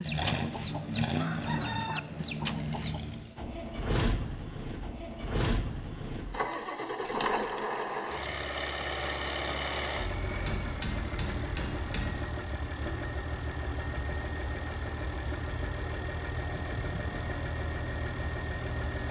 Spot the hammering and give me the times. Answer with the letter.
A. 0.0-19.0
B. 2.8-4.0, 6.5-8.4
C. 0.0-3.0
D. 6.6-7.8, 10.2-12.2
D.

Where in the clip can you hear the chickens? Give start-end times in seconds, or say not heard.
0.0-3.0.